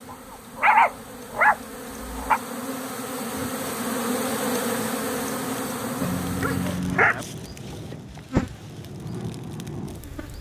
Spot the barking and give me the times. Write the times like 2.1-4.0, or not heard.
0.1-2.4, 6.0-7.2.